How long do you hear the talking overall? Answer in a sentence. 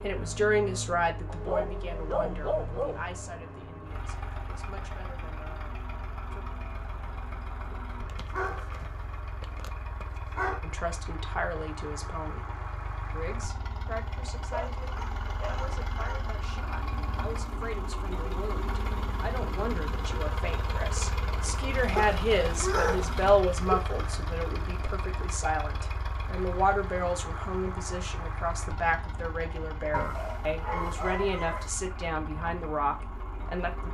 The talking can be heard for 30 seconds in total.